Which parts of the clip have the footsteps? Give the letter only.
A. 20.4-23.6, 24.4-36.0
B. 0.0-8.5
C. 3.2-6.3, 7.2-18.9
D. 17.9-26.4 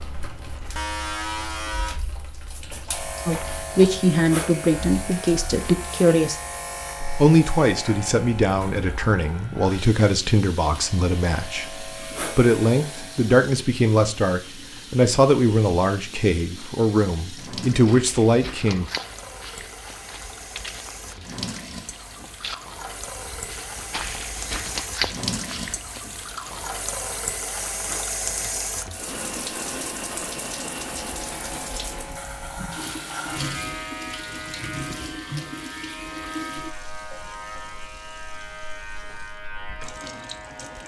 D.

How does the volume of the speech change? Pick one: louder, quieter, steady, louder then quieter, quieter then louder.
steady.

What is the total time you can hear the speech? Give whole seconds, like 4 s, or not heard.
15 s.